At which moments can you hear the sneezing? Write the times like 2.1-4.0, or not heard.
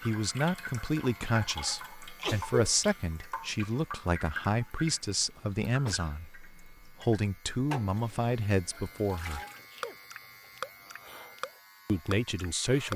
2.1-2.8, 5.3-6.2, 9.2-10.0.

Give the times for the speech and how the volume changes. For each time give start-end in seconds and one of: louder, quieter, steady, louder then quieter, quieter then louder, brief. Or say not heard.
0.0-9.4 steady
11.8-12.9 brief.